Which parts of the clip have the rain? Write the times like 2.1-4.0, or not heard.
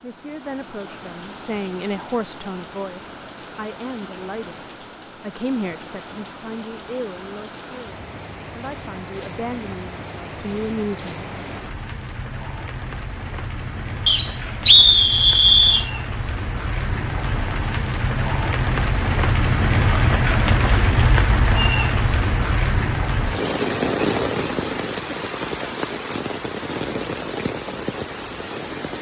0.0-28.9.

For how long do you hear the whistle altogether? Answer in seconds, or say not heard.
2 s.